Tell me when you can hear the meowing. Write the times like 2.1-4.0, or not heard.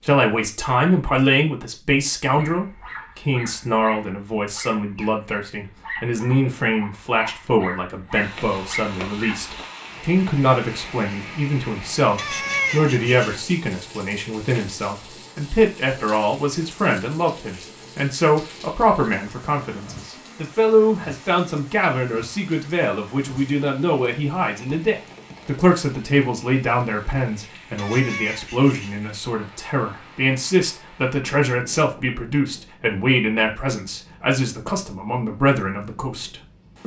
12.2-13.4, 27.8-29.0.